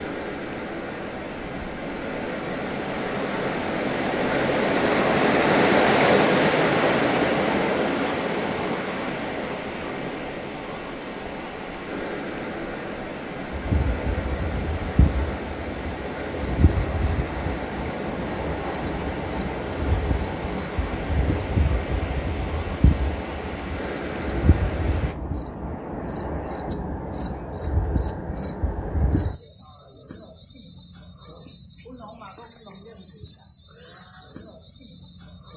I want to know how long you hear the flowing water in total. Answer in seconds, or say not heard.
25 s.